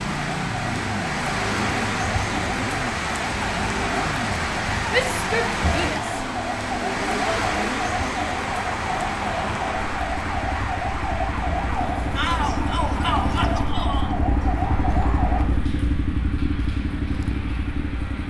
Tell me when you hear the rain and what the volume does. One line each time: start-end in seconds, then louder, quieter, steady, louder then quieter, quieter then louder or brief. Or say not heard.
0.0-18.2 quieter.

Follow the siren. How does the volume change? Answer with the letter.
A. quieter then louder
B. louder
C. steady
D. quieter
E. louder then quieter
C.